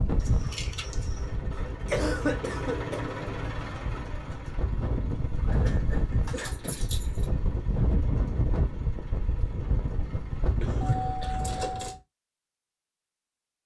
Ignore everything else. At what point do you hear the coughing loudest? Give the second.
2 s.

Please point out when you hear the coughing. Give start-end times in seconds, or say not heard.
1.6-3.0, 5.5-6.8, 10.6-11.4.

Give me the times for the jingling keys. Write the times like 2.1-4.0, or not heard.
0.1-1.3, 5.3-7.3, 10.8-11.9.